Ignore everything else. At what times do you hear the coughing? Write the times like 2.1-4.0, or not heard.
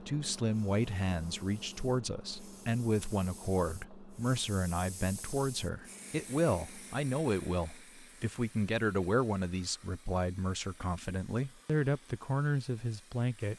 not heard.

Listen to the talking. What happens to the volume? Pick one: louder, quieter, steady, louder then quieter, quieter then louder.
steady.